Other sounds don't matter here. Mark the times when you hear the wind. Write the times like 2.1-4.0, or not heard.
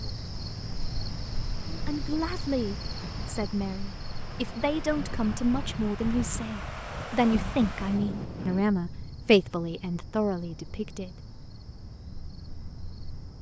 0.0-8.7.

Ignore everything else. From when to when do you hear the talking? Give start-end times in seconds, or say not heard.
1.6-11.1.